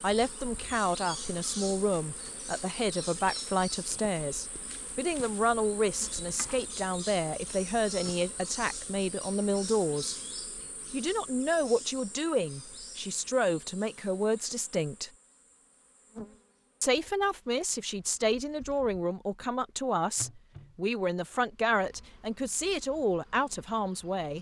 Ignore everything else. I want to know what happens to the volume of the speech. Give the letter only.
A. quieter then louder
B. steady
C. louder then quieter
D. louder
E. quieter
B.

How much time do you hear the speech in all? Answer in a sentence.
You can hear the speech for 22 seconds altogether.